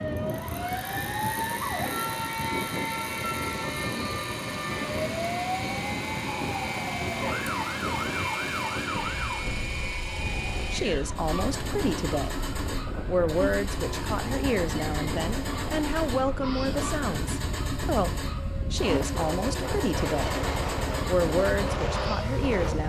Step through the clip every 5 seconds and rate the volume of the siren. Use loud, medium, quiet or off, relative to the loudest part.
loud, loud, medium, loud, loud.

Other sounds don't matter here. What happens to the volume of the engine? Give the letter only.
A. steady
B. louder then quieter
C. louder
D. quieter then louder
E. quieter
A.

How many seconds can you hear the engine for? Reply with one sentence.
The engine can be heard for 23 seconds in total.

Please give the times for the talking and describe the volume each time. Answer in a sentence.
The talking can be heard briefly from 10.7 to 12.4 s; from 13.1 to 20.4 s, at a steady volume; and briefly from 21.1 to 22.8 s.